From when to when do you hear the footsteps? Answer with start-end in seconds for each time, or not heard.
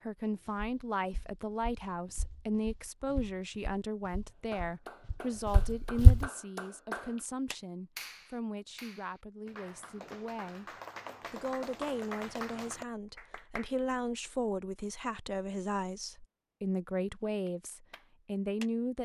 0.5-6.2.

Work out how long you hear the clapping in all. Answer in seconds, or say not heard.
11 s.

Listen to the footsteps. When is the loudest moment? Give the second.
6 s.